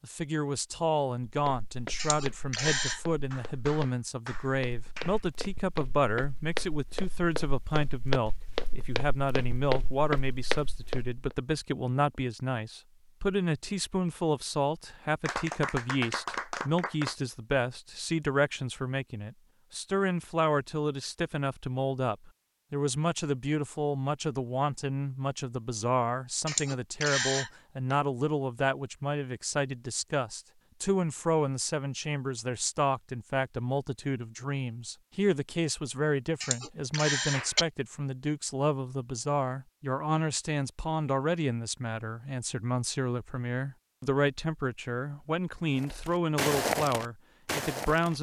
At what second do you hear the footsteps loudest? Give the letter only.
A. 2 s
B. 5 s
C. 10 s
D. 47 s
D.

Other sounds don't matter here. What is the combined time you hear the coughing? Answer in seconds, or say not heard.
3 s.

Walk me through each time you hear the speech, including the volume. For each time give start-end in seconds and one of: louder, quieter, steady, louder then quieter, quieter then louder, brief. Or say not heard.
0.0-48.1 steady.